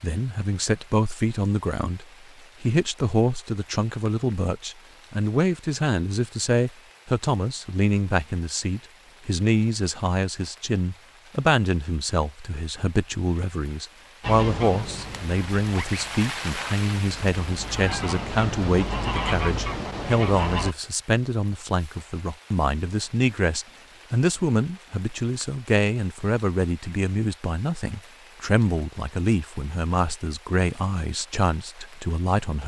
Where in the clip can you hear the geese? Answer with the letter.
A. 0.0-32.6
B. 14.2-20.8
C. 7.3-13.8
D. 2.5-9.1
B.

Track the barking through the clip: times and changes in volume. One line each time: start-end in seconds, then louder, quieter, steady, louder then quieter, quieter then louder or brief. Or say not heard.
not heard.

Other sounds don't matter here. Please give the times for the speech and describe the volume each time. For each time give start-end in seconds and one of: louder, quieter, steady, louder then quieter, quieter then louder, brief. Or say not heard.
0.0-32.6 steady.